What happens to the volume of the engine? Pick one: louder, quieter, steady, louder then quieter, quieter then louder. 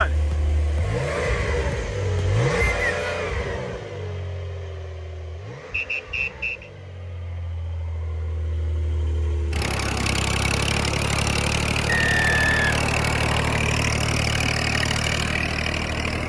quieter then louder.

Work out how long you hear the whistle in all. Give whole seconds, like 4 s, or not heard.
3 s.